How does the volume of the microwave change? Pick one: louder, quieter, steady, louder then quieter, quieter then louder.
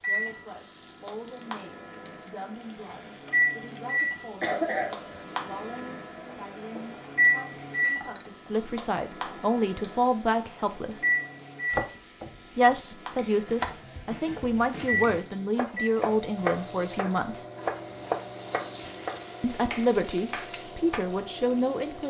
quieter.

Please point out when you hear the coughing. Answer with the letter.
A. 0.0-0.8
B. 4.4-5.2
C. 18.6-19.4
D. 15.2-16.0
B.